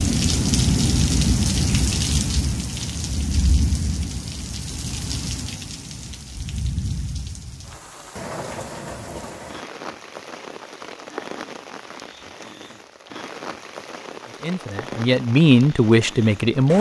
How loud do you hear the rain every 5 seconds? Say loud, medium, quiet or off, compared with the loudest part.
loud, medium, quiet, quiet.